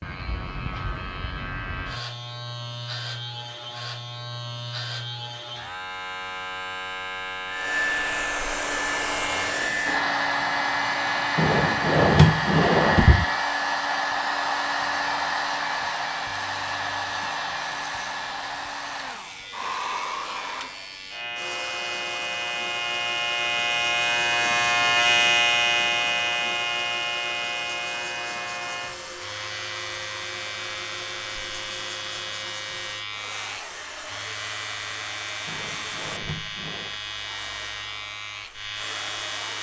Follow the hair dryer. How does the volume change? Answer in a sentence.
The loudness of the hair dryer goes down.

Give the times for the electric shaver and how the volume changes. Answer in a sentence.
The electric shaver can be heard from 0.0 to 39.5 s, getting louder then quieter.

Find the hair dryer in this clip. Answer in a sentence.
You can hear the hair dryer from 7.5 to 39.5 s.